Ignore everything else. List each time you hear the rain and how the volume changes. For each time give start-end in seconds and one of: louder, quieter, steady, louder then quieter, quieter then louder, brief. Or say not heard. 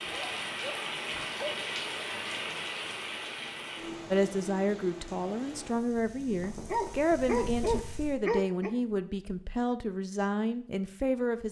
0.0-8.2 quieter.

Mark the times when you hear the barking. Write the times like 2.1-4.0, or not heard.
0.1-1.6, 6.7-8.7.